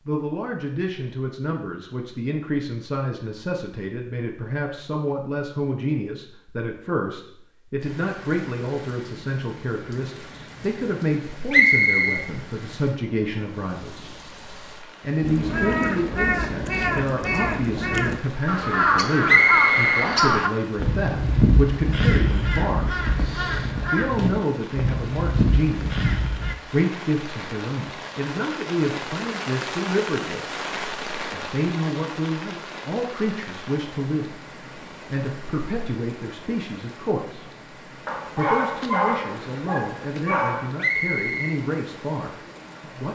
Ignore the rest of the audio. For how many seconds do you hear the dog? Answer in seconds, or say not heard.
3 s.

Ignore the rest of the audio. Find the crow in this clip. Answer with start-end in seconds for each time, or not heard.
15.2-26.6.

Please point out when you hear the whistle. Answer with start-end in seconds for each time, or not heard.
11.5-12.2, 19.2-20.1, 40.8-41.5.